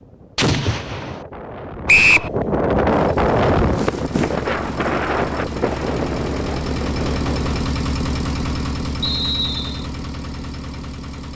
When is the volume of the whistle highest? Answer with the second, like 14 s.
2 s.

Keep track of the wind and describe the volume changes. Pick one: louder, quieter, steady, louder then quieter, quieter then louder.
louder then quieter.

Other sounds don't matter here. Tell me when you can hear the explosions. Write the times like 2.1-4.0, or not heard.
0.3-1.2.